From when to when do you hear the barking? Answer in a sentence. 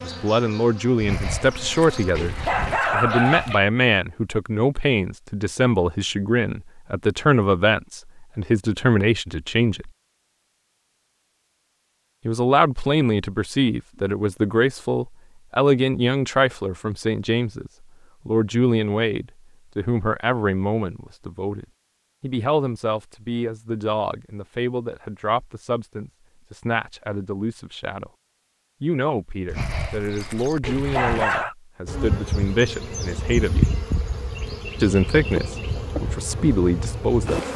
You can hear the barking from 1.0 to 3.6 s and from 29.4 to 31.6 s.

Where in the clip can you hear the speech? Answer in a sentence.
You can hear the speech from 0.0 to 9.9 s, from 12.2 to 28.1 s, from 28.8 to 33.7 s and from 34.8 to 37.5 s.